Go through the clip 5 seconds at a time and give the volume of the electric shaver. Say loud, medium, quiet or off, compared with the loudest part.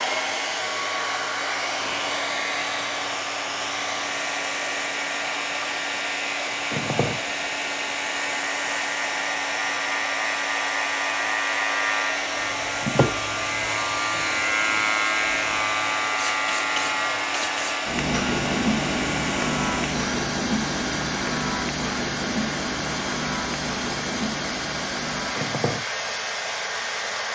medium, medium, loud, loud, loud, medium.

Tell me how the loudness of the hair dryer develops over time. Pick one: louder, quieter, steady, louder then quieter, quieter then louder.
steady.